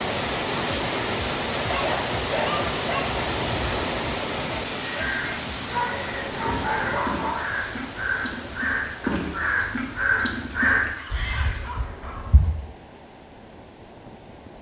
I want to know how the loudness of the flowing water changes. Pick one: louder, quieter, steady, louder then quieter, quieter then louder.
quieter.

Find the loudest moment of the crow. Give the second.
11 s.